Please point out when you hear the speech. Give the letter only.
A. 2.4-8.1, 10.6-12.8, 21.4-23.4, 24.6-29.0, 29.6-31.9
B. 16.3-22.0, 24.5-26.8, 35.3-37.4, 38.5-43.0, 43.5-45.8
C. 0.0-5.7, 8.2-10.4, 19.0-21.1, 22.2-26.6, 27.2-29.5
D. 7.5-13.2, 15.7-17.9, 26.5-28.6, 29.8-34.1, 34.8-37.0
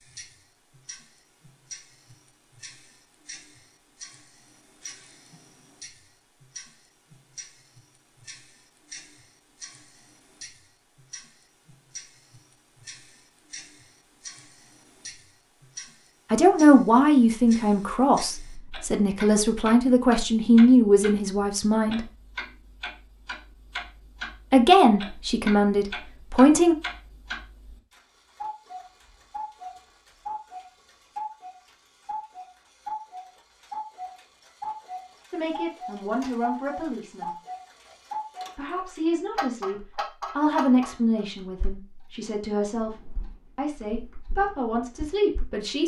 B.